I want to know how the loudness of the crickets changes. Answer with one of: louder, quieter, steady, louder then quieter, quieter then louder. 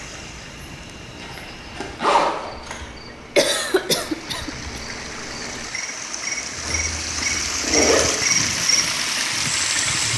louder.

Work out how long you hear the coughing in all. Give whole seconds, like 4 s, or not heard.
2 s.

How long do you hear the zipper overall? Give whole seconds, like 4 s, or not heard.
3 s.